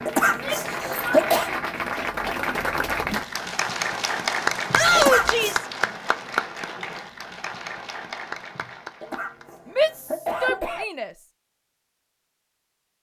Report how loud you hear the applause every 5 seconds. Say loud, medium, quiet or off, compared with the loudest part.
loud, loud, off.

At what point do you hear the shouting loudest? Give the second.
5 s.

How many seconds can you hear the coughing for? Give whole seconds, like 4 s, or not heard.
4 s.